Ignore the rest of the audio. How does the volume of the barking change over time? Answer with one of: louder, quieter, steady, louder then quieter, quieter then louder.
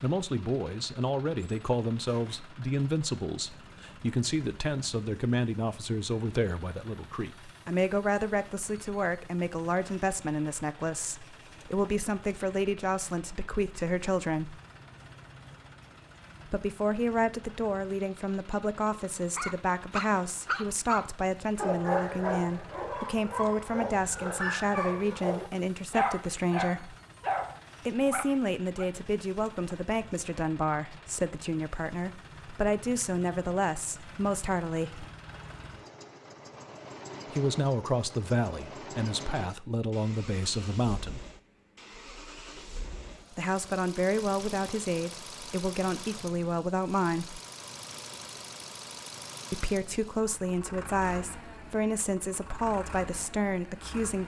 steady.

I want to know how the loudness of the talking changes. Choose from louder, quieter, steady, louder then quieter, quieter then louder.
steady.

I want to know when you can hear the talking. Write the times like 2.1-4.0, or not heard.
0.0-14.6, 16.5-26.9, 27.9-35.0, 37.3-41.2, 43.3-47.4, 49.5-54.2.